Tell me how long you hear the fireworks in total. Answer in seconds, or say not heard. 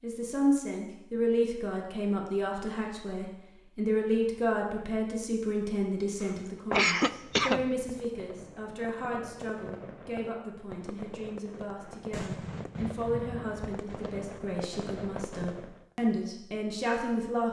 9 s.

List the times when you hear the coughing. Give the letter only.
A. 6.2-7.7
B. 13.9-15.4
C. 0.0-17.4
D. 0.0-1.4
A.